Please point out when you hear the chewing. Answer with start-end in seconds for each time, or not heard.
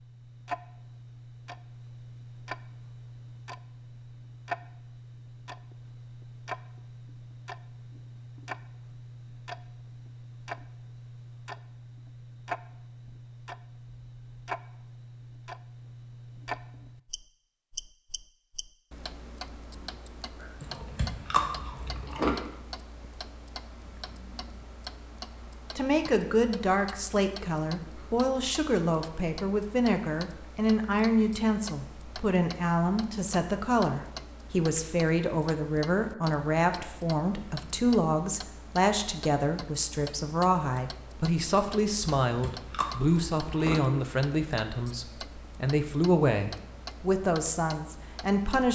20.6-22.4, 42.2-43.8.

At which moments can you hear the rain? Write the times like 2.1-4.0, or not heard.
not heard.